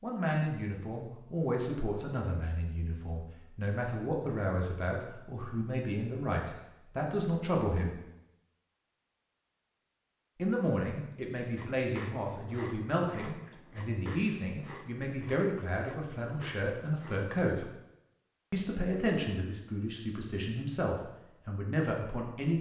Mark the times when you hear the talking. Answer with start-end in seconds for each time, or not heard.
0.0-8.0, 10.3-17.6, 18.5-22.5.